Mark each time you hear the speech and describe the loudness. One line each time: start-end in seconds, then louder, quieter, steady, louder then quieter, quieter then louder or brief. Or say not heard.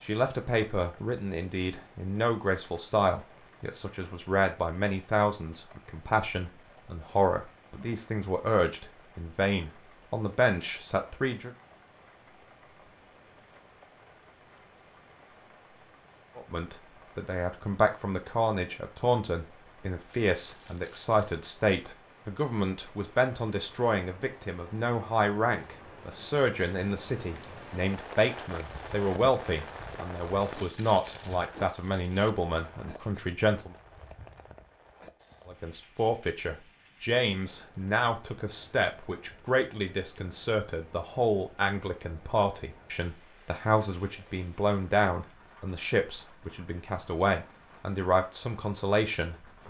0.0-11.5 steady
16.4-33.8 steady
35.5-49.6 steady.